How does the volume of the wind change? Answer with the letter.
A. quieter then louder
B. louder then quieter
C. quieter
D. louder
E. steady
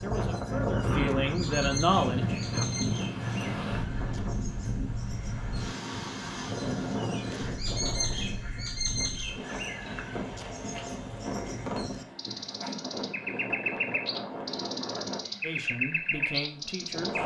C.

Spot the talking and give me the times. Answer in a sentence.
You can hear the talking from 0.0 to 2.6 s and from 15.4 to 17.2 s.